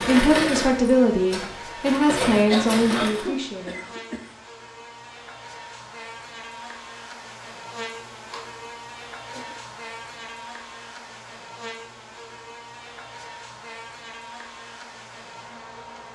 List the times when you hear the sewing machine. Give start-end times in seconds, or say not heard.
0.0-3.2.